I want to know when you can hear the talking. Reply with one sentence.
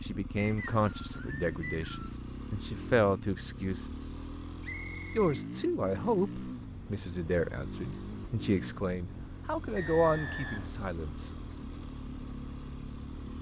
The talking can be heard from 0.0 to 4.2 s and from 5.2 to 11.3 s.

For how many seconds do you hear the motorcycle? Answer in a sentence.
You can hear the motorcycle for 13 seconds altogether.